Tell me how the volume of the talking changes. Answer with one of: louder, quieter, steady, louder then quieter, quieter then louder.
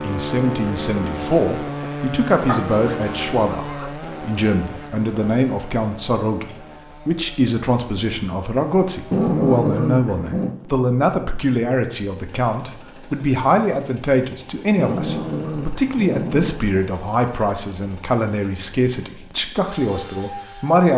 steady.